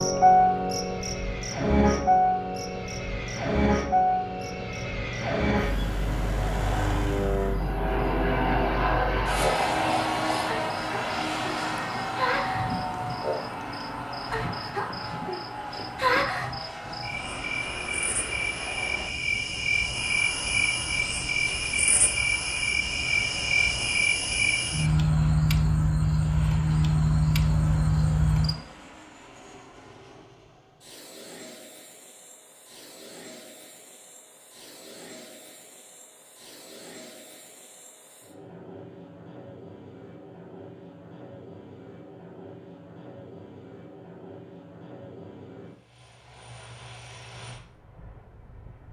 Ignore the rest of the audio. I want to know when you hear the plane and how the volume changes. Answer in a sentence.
The plane can be heard from 0.2 to 48.8 s, getting quieter.